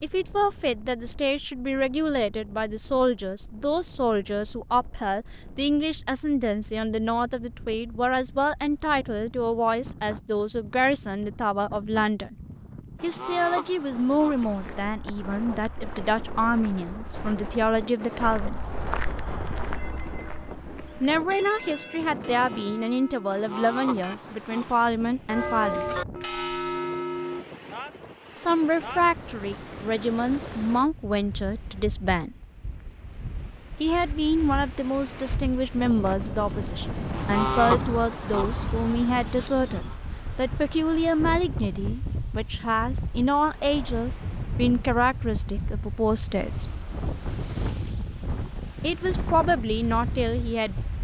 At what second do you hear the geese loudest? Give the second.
38 s.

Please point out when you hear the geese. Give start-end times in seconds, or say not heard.
12.9-14.8, 23.3-24.9, 37.1-40.0.